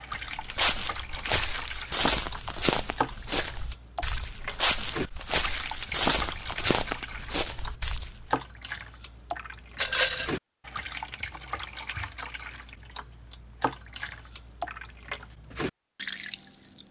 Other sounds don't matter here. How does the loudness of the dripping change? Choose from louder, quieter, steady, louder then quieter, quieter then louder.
steady.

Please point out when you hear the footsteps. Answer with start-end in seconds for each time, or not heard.
0.3-8.2.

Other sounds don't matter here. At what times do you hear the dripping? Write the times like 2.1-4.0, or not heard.
0.0-16.8.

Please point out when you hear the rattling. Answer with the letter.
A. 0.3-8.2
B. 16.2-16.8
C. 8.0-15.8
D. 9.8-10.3
D.